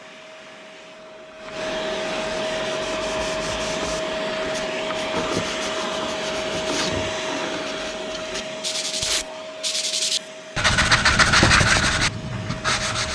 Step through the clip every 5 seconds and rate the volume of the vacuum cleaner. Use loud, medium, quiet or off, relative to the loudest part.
loud, loud, medium.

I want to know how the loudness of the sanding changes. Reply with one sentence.
The loudness of the sanding goes up.